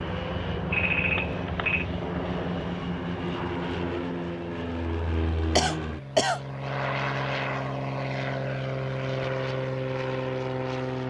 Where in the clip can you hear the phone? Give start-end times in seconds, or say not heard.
0.7-1.9.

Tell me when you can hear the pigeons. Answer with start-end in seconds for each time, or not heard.
not heard.